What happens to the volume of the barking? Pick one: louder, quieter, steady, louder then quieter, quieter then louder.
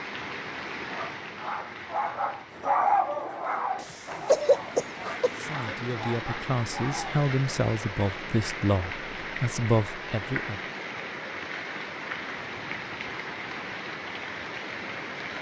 louder then quieter.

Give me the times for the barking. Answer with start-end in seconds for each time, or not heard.
0.8-7.2.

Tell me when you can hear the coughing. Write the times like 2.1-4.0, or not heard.
3.8-5.8.